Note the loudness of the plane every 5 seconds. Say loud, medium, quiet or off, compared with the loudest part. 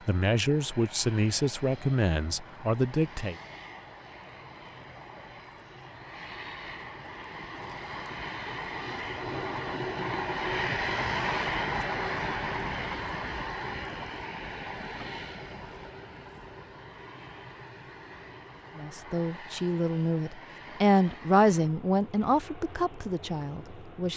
quiet, medium, loud, quiet, quiet.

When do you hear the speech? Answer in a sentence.
You can hear the speech from 0.1 to 3.4 s and from 18.8 to 24.1 s.